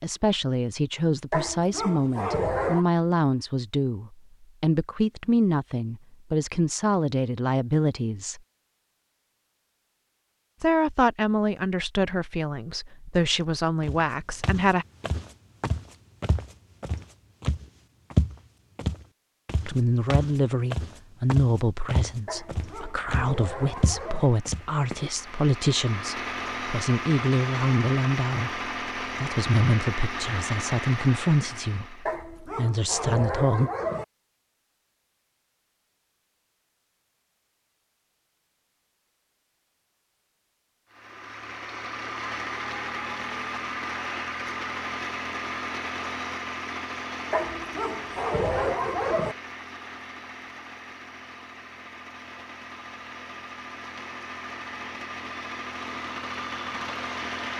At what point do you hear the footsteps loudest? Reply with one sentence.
The volume of the footsteps peaks at 18 seconds.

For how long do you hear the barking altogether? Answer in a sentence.
You can hear the barking for 8 seconds altogether.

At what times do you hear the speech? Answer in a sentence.
The speech can be heard from 0.0 to 8.4 s, from 10.6 to 14.8 s and from 19.6 to 33.7 s.